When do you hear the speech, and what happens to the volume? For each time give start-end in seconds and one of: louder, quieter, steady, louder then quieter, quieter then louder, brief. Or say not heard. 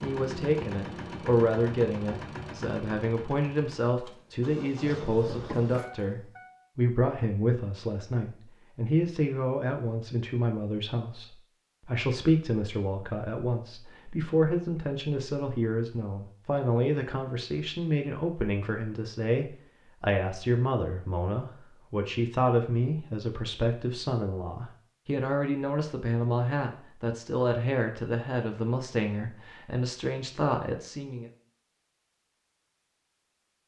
0.0-31.3 steady.